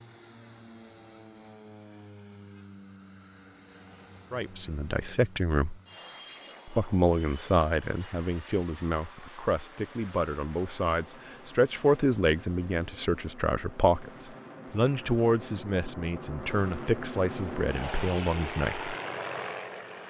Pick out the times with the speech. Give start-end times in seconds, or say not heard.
4.3-5.8, 6.7-18.9.